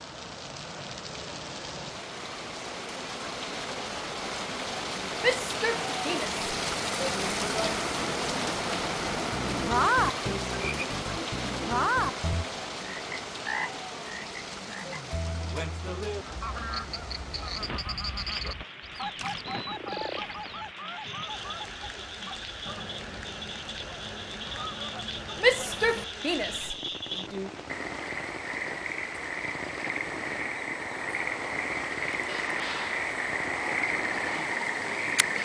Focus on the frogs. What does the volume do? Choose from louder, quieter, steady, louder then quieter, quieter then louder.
quieter then louder.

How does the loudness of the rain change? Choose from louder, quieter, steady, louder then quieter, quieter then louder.
quieter.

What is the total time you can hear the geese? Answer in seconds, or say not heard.
11 s.